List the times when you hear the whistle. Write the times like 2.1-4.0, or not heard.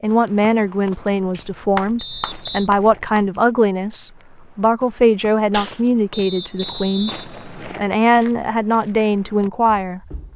1.9-2.7, 6.1-7.9.